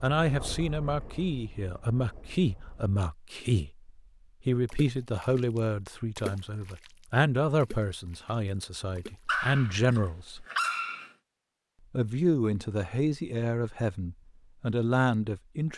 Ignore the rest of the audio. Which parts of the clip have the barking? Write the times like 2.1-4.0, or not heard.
9.2-11.1.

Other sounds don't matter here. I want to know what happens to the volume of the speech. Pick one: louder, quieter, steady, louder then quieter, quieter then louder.
steady.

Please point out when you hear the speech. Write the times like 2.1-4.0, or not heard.
0.0-10.4, 11.9-15.7.